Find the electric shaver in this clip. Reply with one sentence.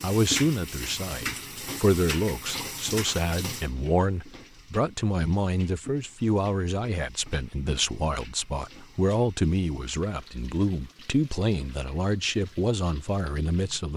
You can't hear the electric shaver here.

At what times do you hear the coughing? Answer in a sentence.
You can't hear the coughing here.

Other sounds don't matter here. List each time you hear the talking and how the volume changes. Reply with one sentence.
You can hear the talking from 0.0 to 13.9 s, at a steady volume.